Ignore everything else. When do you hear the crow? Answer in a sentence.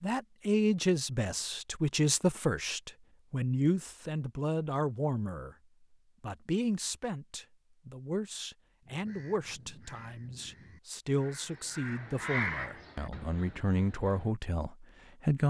The crow can be heard from 8.8 to 14.3 s.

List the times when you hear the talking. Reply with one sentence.
The talking can be heard from 0.0 to 5.5 s and from 6.2 to 15.4 s.